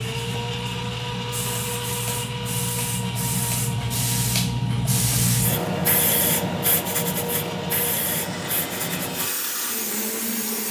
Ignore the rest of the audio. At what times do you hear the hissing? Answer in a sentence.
You can hear the hissing from 0.0 to 10.6 s.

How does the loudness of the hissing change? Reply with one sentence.
The loudness of the hissing goes up, then down.